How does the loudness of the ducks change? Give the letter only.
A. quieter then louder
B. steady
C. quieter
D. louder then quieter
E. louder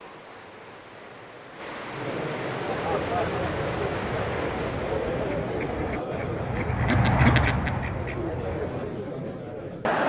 D.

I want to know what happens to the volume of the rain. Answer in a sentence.
The loudness of the rain goes up.